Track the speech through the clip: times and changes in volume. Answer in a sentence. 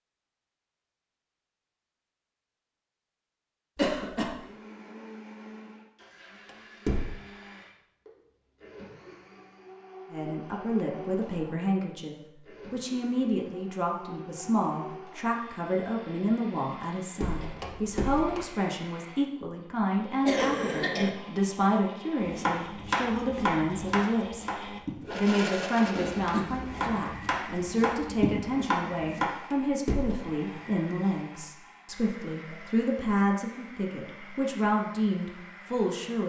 You can hear the speech from 10.1 to 36.2 s, at a steady volume.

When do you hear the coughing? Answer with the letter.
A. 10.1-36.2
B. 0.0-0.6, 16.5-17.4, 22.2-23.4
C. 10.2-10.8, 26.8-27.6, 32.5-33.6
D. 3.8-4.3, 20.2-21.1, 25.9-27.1
D.